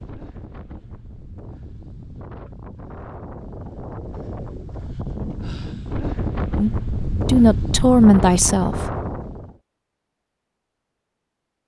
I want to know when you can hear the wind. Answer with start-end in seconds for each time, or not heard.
0.0-9.6.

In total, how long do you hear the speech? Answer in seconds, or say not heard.
2 s.